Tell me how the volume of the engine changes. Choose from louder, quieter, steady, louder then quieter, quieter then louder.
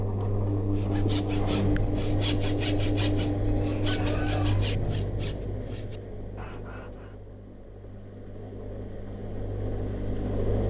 quieter then louder.